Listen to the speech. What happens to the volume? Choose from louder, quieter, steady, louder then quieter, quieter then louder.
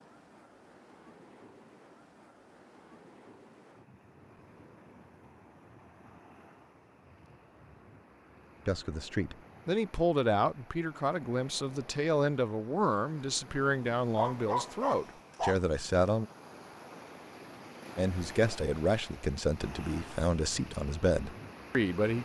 steady.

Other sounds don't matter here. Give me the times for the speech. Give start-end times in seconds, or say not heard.
8.7-16.2, 17.9-22.2.